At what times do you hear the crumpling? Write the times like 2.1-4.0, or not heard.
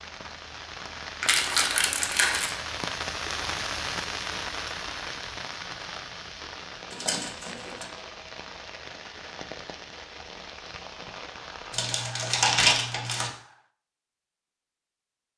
1.2-2.5, 6.9-7.8, 11.7-13.3.